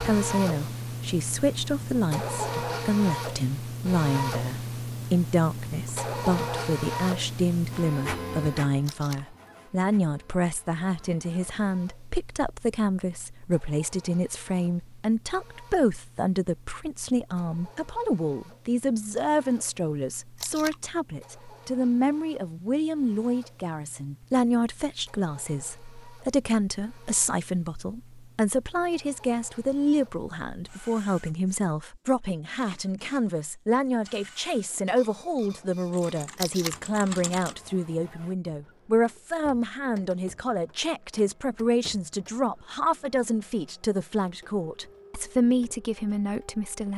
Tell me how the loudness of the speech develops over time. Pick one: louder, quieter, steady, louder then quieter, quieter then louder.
steady.